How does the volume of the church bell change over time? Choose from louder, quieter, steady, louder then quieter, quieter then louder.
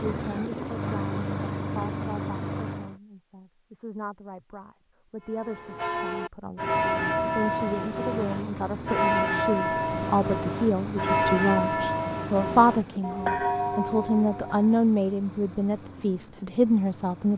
steady.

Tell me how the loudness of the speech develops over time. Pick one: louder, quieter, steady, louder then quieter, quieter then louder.
louder.